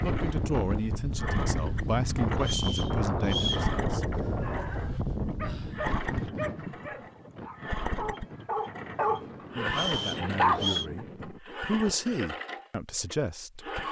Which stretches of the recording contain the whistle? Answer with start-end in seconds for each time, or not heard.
2.4-3.7, 9.7-10.8.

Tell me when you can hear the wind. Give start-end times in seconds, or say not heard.
0.0-11.4.